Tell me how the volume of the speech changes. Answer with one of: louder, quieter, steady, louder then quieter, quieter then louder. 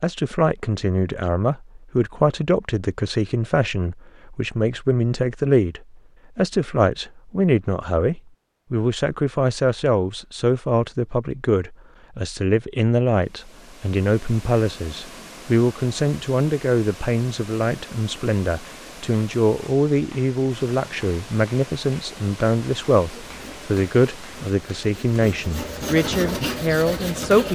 steady.